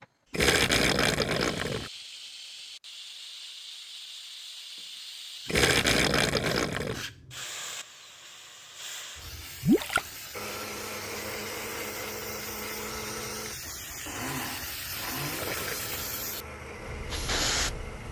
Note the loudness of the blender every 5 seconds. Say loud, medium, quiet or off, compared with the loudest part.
off, off, loud, loud.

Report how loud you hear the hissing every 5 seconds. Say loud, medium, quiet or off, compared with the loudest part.
medium, medium, medium, loud.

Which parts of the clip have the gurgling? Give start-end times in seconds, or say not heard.
0.3-1.9, 5.5-7.0, 9.6-10.1, 15.2-15.8.